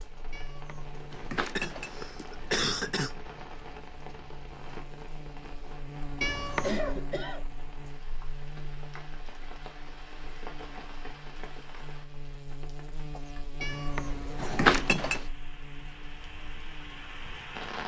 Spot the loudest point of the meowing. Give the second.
15 s.